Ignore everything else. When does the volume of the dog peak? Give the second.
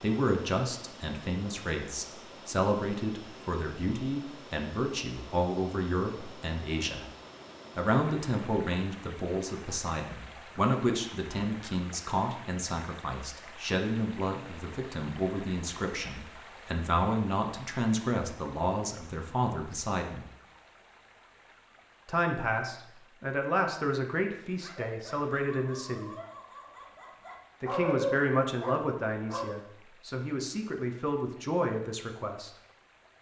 28 s.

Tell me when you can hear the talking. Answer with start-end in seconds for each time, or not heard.
0.0-7.0, 7.8-20.2, 22.1-26.1, 27.6-32.5.